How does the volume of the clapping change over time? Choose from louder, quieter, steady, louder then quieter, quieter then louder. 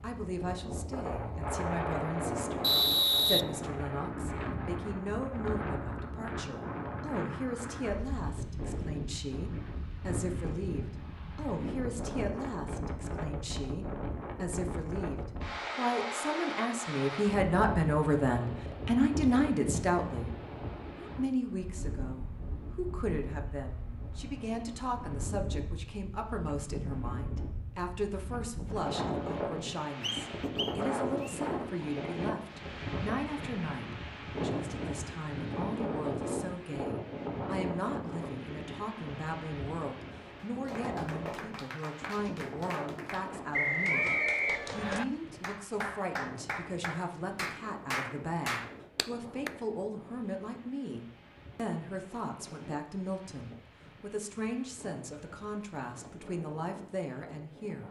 louder.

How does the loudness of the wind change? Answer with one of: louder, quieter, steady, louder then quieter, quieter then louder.
quieter.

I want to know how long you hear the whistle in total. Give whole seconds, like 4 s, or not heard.
4 s.